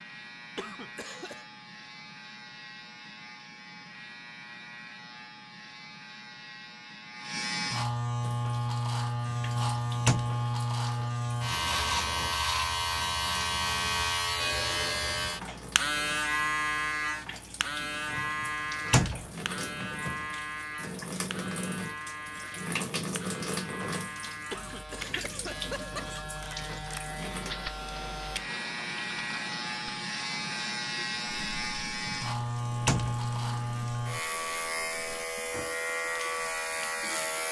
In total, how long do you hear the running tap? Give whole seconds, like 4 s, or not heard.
29 s.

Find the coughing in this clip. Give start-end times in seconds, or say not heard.
0.6-1.4, 24.5-26.2.